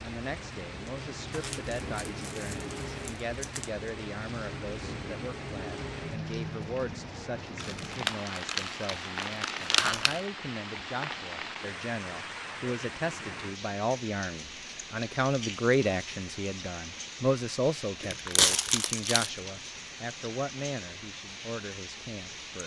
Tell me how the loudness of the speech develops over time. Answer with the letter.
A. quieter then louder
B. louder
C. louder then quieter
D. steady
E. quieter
C.